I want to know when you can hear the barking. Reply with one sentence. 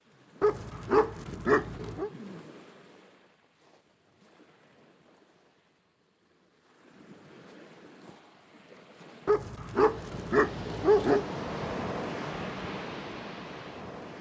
The barking can be heard from 0.4 to 2.1 s and from 9.2 to 11.2 s.